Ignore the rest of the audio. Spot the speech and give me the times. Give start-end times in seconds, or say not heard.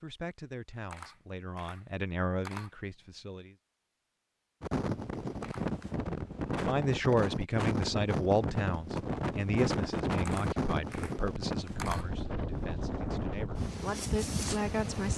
0.0-3.5, 6.5-15.1.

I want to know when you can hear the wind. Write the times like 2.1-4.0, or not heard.
4.6-15.1.